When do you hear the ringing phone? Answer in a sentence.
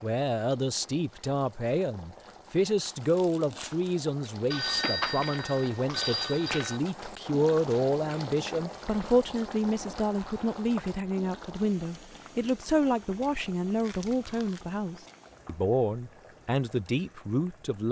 The ringing phone can be heard from 4.5 to 6.8 s and from 9.8 to 10.9 s.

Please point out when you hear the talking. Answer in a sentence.
You can hear the talking from 0.0 to 17.8 s.